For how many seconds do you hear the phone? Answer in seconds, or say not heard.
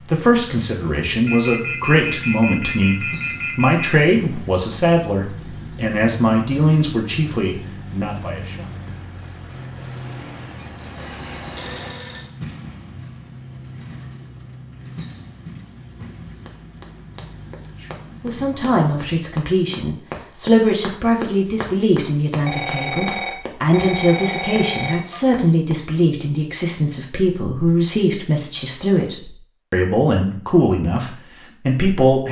7 s.